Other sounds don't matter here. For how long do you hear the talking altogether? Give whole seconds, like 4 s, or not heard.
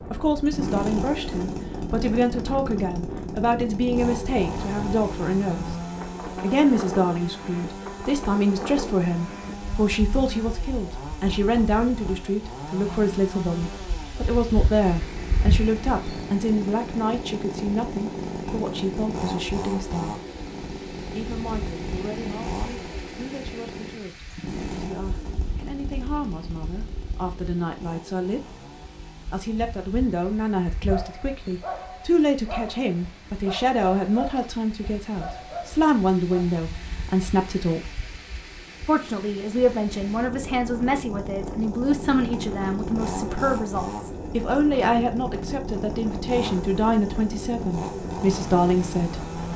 46 s.